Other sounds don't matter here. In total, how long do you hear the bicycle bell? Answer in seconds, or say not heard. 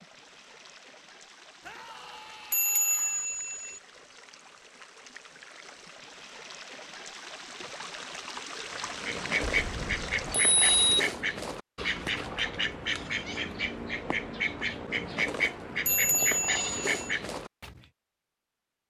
4 s.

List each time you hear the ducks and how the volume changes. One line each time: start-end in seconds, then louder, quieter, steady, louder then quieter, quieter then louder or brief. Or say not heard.
8.8-17.9 steady.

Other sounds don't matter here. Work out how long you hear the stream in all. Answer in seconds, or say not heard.
11 s.